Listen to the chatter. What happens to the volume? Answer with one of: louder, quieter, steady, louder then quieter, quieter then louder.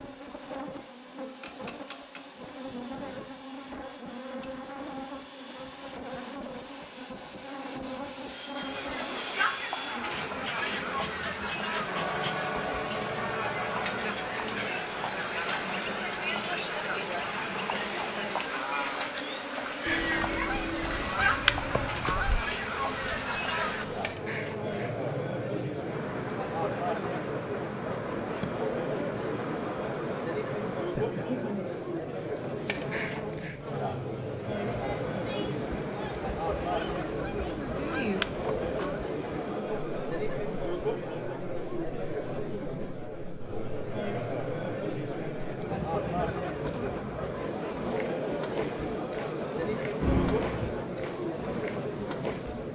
steady.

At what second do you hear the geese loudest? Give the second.
21 s.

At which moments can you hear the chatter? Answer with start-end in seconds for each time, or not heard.
8.6-52.7.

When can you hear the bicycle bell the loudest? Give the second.
50 s.